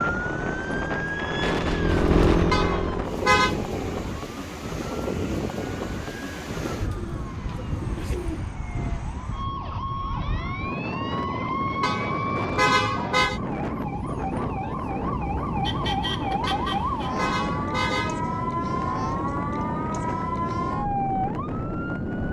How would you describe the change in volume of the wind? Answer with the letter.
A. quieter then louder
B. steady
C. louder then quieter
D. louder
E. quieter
B.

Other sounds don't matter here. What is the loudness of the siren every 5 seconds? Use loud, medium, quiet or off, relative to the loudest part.
loud, medium, loud, loud, loud.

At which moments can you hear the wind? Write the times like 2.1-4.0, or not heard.
0.0-22.2.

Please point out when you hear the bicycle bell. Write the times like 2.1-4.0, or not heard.
not heard.